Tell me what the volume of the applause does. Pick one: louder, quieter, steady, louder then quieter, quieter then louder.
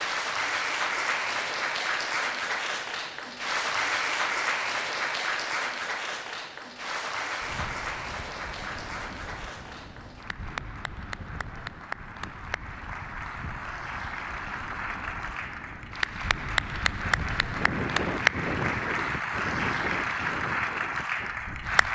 quieter then louder.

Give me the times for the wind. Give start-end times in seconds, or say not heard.
7.4-21.9.